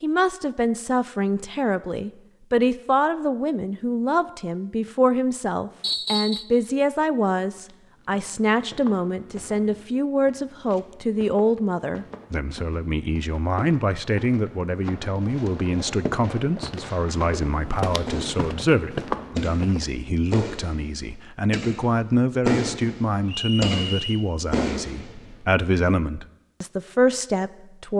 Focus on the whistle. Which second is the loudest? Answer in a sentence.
The loudest moment of the whistle is at 6 seconds.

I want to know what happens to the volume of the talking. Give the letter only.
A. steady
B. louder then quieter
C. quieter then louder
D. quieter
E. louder
A.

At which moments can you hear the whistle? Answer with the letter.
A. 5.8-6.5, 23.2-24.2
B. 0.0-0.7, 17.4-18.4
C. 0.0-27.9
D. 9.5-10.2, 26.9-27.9
A.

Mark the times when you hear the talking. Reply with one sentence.
The talking can be heard from 0.0 to 27.9 s.